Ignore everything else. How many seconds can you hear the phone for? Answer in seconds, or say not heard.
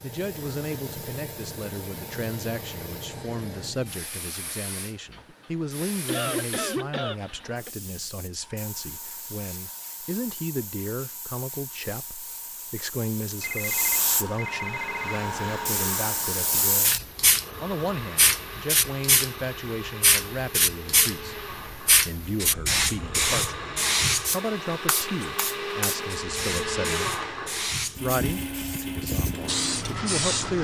2 s.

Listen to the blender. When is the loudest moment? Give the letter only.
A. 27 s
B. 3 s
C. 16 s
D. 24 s
A.